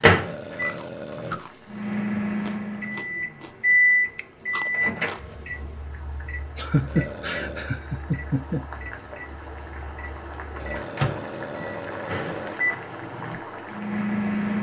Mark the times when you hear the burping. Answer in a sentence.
You can hear the burping from 0.1 to 1.4 s, from 6.8 to 7.8 s and from 10.6 to 12.6 s.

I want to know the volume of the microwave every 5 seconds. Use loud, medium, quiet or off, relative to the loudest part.
loud, quiet, medium.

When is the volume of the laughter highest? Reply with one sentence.
The volume of the laughter peaks at 7 seconds.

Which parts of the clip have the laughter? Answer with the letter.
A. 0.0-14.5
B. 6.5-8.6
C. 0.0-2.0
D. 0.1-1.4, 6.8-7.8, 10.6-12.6
B.